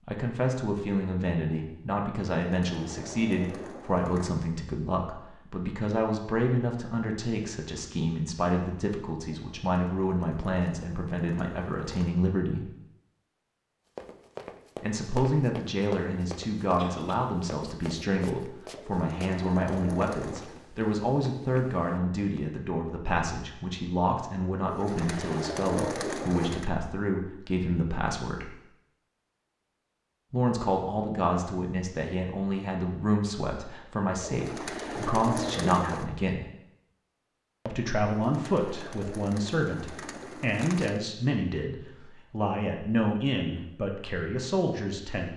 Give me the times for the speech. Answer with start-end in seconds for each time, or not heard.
0.1-12.7, 14.8-28.6, 30.3-36.5, 37.6-45.3.